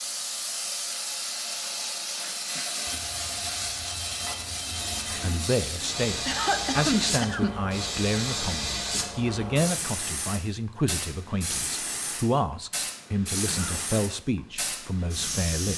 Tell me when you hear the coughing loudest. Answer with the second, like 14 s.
7 s.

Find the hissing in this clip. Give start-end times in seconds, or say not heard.
0.0-15.7.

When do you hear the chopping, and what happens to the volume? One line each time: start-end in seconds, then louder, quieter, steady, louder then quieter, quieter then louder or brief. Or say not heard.
not heard.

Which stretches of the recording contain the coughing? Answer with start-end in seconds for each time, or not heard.
2.2-2.8, 6.2-7.6, 13.4-13.9.